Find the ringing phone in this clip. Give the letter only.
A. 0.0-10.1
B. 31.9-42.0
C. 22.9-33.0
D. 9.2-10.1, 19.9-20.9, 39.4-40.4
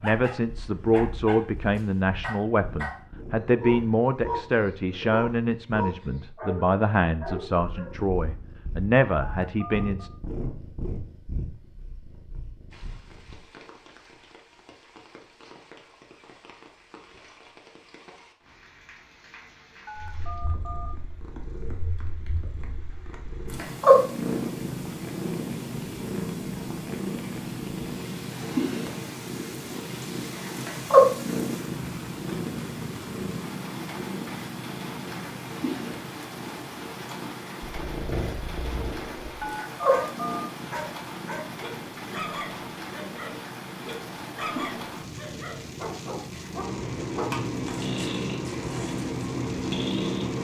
D.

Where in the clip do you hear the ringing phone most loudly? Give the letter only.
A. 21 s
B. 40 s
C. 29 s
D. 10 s
B.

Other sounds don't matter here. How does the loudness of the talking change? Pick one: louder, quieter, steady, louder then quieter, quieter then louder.
steady.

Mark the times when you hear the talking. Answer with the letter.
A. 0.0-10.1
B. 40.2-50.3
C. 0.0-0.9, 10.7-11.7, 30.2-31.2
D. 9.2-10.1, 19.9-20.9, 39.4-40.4
A.